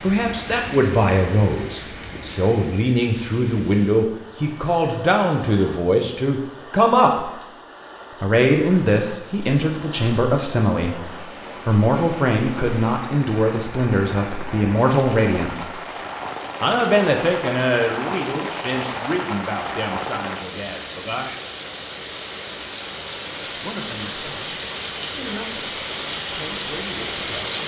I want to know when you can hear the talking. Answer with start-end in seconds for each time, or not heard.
0.0-7.3, 8.2-15.8, 16.6-21.4, 23.4-27.6.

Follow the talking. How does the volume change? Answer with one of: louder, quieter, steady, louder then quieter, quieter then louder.
quieter.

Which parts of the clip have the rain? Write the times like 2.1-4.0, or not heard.
0.0-27.6.